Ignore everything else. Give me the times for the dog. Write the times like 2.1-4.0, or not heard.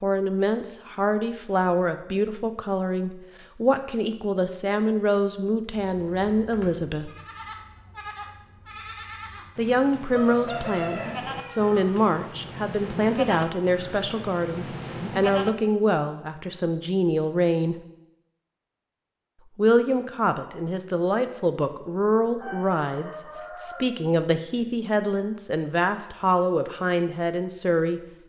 not heard.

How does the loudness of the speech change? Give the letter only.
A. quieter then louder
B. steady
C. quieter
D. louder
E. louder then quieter
B.